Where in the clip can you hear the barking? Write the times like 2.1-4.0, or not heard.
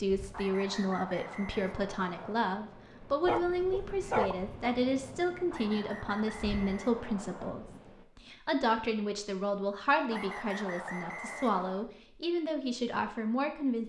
3.2-4.8.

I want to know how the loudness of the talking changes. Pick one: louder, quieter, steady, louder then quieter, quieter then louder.
steady.